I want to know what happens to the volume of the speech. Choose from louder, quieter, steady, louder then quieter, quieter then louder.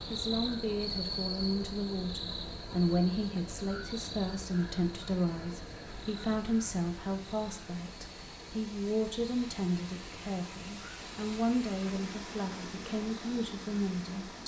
steady.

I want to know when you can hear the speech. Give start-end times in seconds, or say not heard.
0.1-14.4.